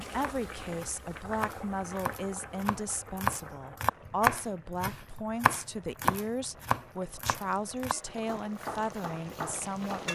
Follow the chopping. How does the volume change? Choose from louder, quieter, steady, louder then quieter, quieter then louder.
louder then quieter.